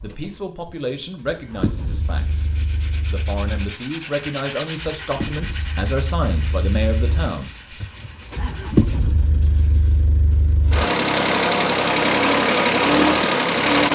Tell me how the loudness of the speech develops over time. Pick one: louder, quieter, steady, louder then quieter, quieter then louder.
quieter then louder.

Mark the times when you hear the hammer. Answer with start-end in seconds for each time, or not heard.
not heard.